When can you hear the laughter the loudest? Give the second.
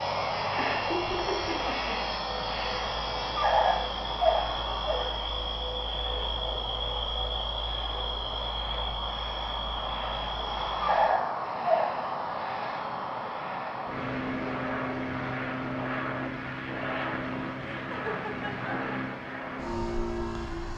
1 s.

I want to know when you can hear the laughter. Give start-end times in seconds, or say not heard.
0.6-2.5, 17.7-18.9.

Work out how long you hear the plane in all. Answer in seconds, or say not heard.
21 s.